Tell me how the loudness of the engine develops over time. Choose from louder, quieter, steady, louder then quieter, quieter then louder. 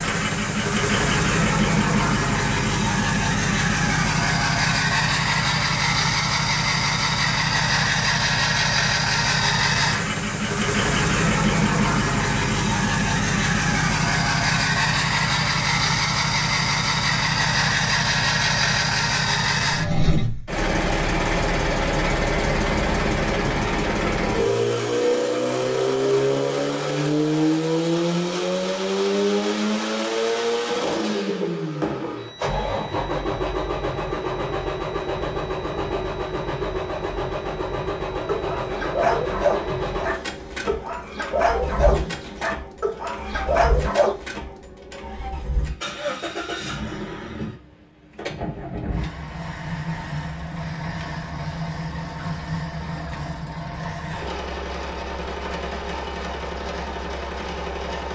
quieter.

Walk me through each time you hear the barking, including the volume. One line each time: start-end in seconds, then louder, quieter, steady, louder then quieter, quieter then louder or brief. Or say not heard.
38.3-44.1 quieter then louder.